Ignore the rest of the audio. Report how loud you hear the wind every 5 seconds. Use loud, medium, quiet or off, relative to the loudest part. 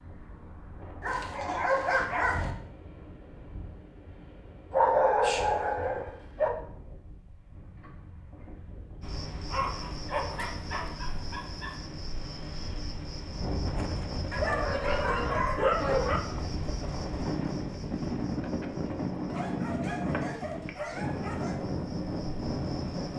quiet, quiet, medium, loud, loud.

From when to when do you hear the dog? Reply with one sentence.
You can hear the dog from 1.0 to 2.5 s, from 4.7 to 6.5 s, from 9.4 to 11.8 s, from 14.3 to 16.2 s and from 19.2 to 21.6 s.